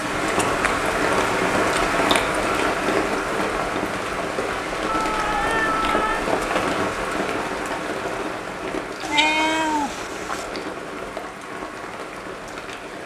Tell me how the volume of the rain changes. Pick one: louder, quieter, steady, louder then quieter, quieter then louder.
quieter.